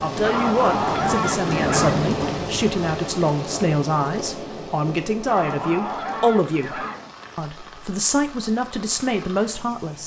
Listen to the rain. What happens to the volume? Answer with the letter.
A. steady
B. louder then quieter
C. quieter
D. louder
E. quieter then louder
C.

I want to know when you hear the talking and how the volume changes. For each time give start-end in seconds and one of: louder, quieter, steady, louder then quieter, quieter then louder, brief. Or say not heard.
0.0-10.0 steady.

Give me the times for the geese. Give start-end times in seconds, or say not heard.
0.2-2.0, 5.2-7.2.